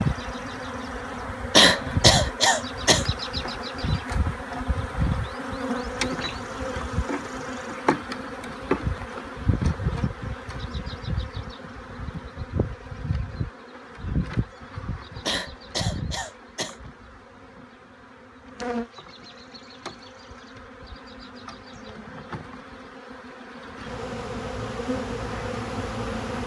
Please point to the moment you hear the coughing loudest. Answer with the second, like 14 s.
2 s.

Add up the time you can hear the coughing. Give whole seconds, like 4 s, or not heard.
3 s.